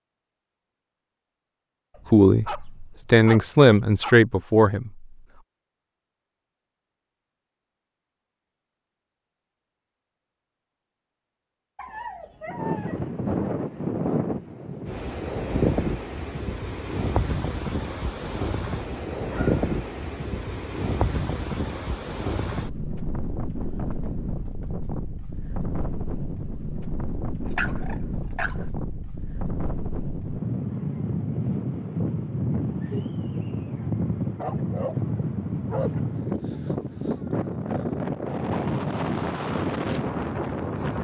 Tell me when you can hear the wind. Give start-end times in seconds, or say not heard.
12.4-40.9.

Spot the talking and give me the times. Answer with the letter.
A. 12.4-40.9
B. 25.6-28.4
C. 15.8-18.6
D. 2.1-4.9
D.